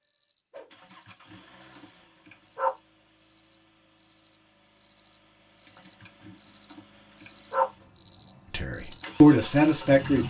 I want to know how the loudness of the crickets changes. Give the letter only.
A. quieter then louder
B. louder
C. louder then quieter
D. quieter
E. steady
B.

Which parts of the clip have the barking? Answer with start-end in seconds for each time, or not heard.
0.7-2.7, 5.7-7.7.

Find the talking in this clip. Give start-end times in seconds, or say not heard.
8.5-10.2.